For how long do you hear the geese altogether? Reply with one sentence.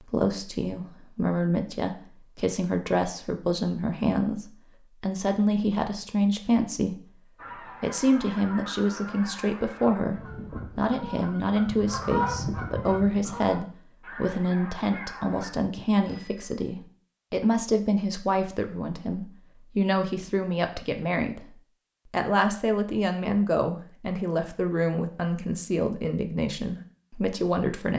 You can hear the geese for 8 seconds altogether.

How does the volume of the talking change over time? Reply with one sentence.
The loudness of the talking stays about the same.